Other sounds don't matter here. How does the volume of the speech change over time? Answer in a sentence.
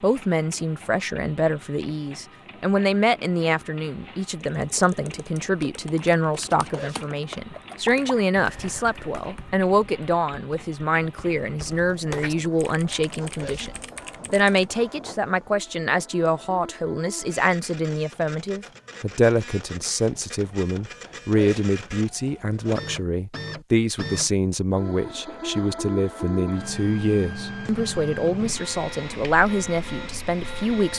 The volume of the speech stays about the same.